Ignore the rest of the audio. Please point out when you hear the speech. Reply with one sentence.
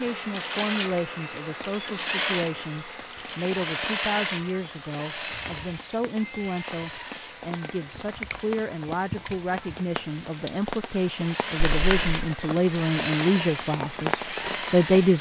The speech can be heard from 0.0 to 15.1 s.